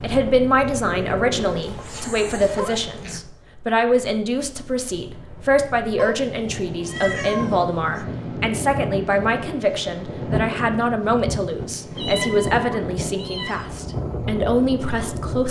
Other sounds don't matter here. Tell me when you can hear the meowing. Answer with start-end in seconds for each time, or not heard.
0.8-3.2, 6.0-8.1, 11.9-13.7.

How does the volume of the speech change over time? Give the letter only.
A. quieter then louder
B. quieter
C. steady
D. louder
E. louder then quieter
C.